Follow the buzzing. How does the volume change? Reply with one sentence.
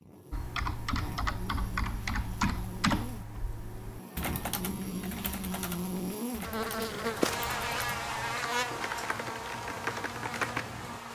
The loudness of the buzzing goes up, then down.